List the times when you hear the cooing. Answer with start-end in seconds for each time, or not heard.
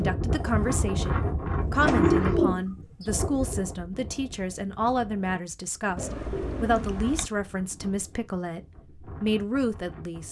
1.6-3.5, 6.0-7.3.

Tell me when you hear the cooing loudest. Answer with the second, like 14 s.
2 s.